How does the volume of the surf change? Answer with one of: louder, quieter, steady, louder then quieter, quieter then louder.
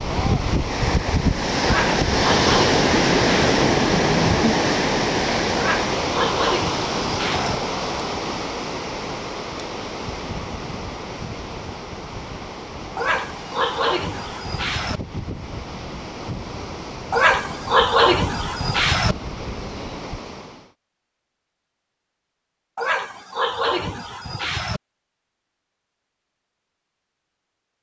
quieter.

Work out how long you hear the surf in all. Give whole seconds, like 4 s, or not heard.
21 s.